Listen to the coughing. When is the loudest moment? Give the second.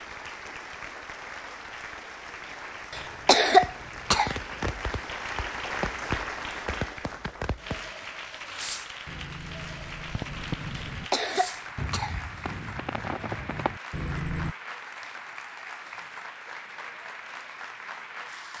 3 s.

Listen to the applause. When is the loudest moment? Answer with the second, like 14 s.
6 s.